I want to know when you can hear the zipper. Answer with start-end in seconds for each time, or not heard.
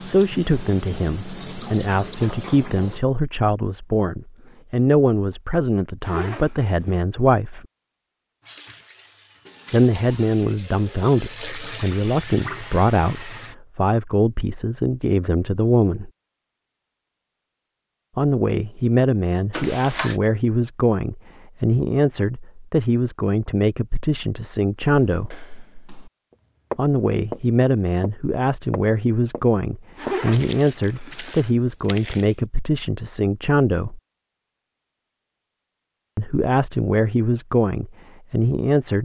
6.0-7.0, 19.5-20.1, 29.9-31.5.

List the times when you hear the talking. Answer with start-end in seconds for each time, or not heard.
0.1-7.7, 9.7-16.1, 18.1-25.4, 26.8-34.0, 36.1-38.9.